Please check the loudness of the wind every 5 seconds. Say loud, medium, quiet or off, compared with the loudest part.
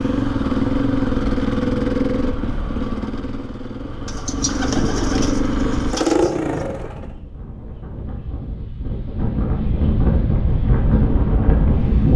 off, medium, loud.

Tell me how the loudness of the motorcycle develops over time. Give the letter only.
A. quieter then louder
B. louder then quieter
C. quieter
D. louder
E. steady
A.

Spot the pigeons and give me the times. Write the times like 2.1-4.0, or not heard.
4.0-6.6.